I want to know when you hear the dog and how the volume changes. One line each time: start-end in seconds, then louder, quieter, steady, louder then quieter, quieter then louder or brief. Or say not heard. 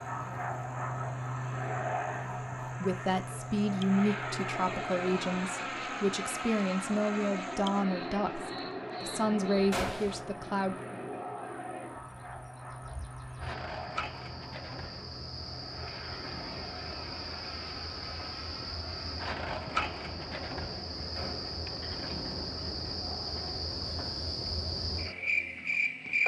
not heard.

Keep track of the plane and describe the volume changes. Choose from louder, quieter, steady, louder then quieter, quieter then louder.
quieter.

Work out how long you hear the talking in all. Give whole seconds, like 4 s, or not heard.
8 s.